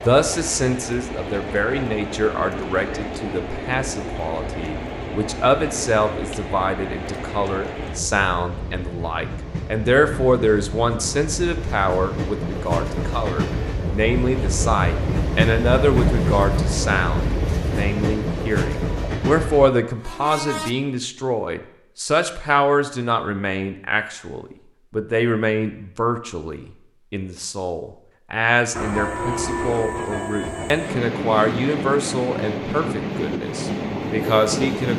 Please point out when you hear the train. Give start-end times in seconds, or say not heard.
0.0-20.8, 28.7-34.9.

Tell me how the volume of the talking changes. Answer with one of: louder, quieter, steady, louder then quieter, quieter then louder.
steady.